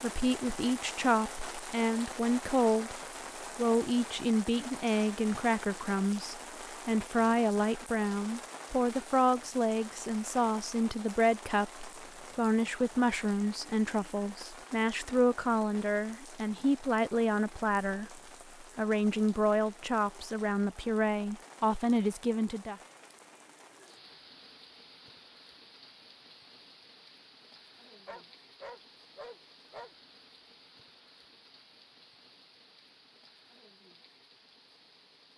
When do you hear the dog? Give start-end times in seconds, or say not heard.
28.1-29.9.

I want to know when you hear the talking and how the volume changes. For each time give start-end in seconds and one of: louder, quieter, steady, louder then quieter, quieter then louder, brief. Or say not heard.
0.0-3.0 brief
3.5-22.8 steady.